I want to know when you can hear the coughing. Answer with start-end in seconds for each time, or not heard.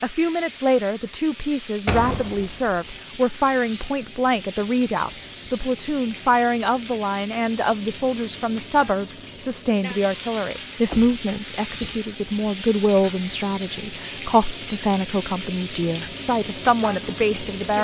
not heard.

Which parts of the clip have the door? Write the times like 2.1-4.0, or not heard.
1.9-2.8, 10.8-12.0.